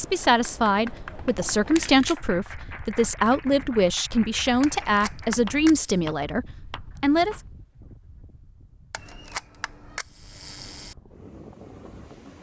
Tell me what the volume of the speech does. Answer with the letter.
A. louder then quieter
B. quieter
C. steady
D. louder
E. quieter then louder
C.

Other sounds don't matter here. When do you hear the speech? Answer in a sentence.
The speech can be heard from 0.0 to 7.4 s.